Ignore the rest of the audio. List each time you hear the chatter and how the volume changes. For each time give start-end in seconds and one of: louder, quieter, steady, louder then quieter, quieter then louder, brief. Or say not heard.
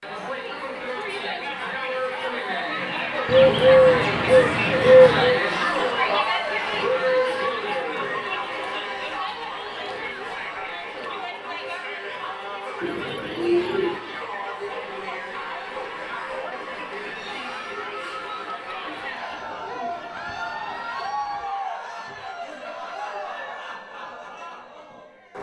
0.0-25.3 quieter.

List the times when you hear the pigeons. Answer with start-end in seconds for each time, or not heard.
3.2-5.5, 12.8-14.0, 19.3-21.4.